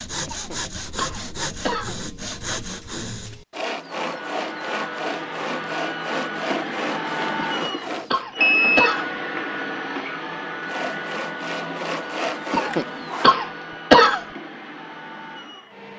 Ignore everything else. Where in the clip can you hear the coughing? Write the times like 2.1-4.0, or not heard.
0.2-1.9, 7.4-9.1, 12.5-14.2.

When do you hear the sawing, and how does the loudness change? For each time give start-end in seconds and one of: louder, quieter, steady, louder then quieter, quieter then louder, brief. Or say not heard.
0.0-8.2 steady
10.6-13.3 brief.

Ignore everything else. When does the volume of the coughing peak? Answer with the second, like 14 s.
14 s.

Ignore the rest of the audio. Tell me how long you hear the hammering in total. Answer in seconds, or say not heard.
not heard.